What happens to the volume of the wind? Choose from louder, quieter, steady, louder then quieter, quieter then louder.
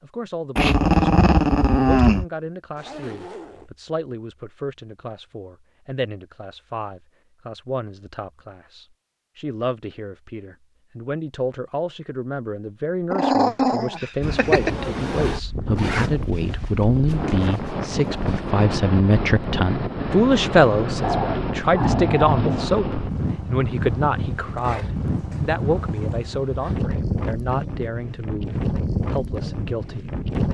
steady.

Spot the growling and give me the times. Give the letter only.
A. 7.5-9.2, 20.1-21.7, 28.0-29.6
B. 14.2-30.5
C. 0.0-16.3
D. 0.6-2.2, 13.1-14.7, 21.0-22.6
D.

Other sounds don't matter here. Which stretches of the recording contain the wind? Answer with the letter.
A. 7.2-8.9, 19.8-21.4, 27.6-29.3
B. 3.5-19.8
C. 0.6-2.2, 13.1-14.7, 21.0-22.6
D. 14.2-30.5
D.